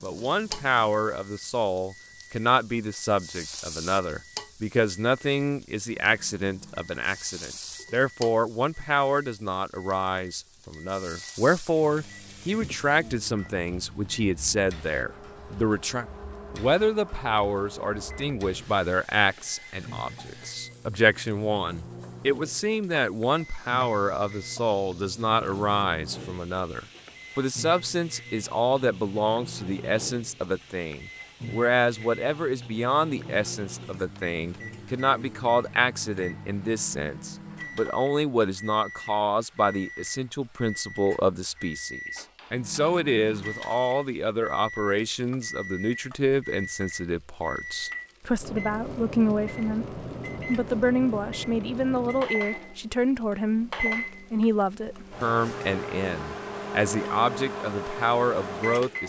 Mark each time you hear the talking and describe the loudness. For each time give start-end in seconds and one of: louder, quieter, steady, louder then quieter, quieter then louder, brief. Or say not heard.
0.0-59.0 steady.